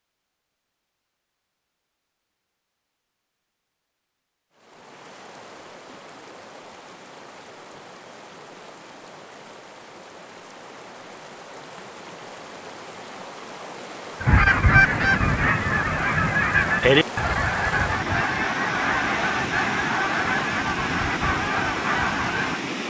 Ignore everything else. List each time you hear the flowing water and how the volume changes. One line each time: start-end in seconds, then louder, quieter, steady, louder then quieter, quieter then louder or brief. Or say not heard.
4.5-22.8 louder.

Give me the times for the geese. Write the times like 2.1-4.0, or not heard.
14.2-22.6.